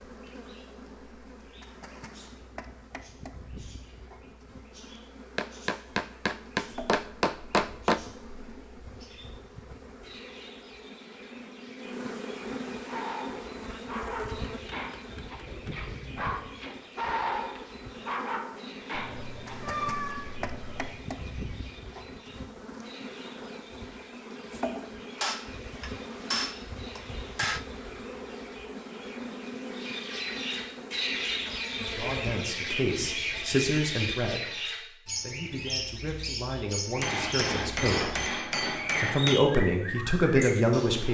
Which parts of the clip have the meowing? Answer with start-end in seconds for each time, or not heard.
18.9-20.9.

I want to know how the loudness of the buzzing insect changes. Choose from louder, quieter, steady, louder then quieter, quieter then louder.
louder.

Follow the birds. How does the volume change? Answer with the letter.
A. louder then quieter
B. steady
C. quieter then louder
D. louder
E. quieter
D.